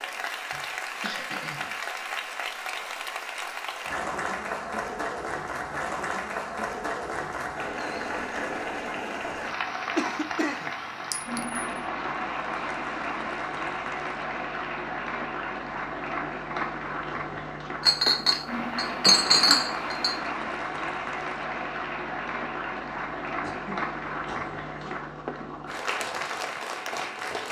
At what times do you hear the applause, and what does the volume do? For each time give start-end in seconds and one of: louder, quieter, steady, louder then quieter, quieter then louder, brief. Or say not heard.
0.0-27.4 steady.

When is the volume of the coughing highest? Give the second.
10 s.